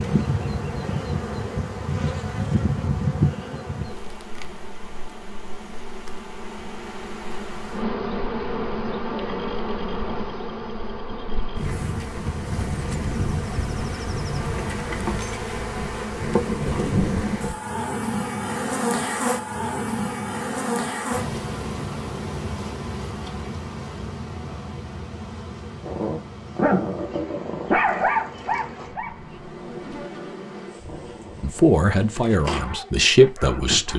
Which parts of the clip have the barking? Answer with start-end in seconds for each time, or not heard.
25.9-33.9.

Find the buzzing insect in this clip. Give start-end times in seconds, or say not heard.
0.0-33.9.